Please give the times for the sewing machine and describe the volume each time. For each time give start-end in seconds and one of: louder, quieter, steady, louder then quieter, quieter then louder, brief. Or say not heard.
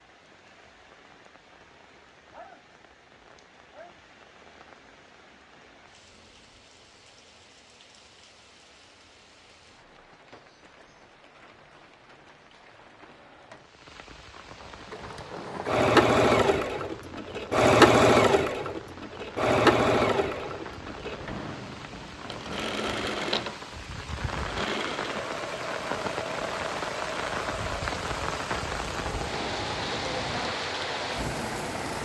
14.6-32.0 quieter.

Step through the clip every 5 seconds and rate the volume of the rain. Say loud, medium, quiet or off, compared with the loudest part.
quiet, quiet, quiet, quiet, medium, loud, loud.